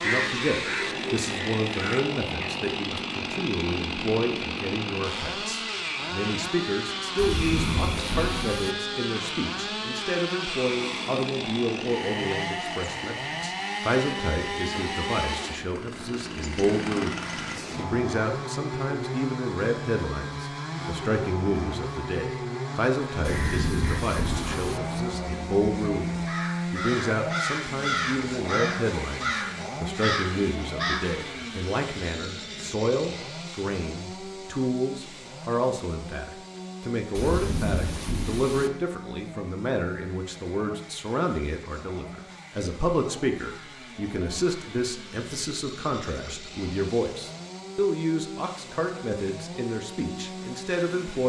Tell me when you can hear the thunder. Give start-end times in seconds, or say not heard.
7.2-8.8, 23.2-24.8, 37.1-38.7.